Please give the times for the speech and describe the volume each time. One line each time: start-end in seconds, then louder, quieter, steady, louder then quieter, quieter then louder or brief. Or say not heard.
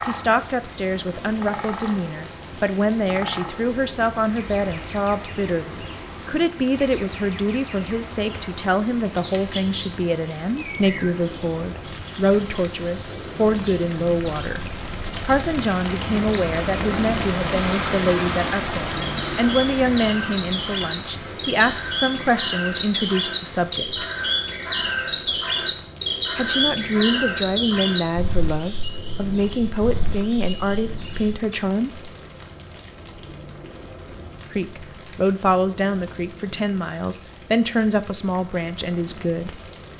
0.1-14.6 steady
15.2-24.1 steady
26.4-32.1 steady
34.5-39.9 quieter.